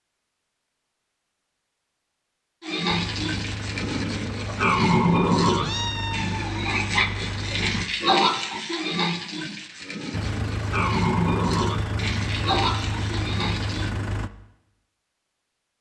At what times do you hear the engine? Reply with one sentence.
The engine can be heard from 2.9 to 7.8 s and from 10.1 to 14.3 s.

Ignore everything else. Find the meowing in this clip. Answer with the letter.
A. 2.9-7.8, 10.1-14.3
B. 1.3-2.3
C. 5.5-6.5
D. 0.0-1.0
C.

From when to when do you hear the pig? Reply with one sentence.
You can hear the pig from 2.6 to 13.9 s.